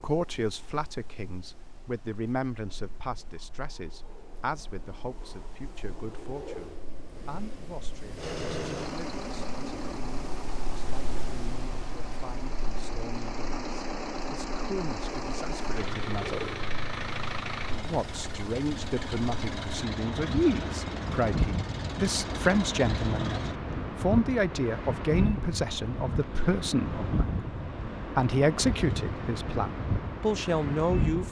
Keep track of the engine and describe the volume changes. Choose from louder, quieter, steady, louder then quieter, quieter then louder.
steady.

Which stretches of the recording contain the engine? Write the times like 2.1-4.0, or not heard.
8.2-23.6.